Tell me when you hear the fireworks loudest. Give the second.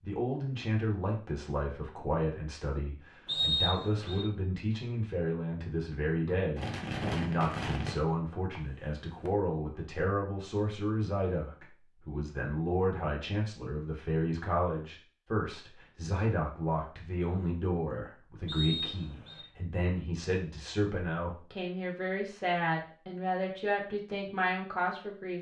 7 s.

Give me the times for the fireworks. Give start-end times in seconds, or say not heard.
6.5-9.3.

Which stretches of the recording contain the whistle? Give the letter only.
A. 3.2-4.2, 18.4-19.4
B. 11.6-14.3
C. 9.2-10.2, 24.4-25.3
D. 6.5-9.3
A.